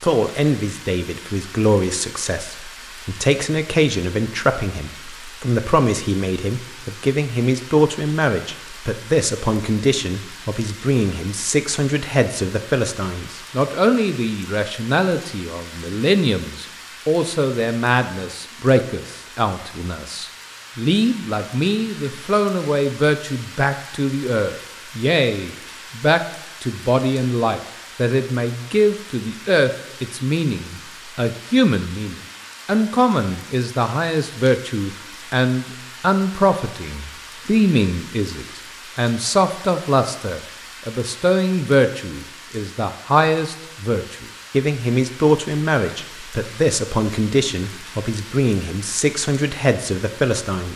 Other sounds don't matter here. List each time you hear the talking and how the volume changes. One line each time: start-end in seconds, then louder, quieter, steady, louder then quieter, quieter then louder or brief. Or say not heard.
0.0-50.7 steady.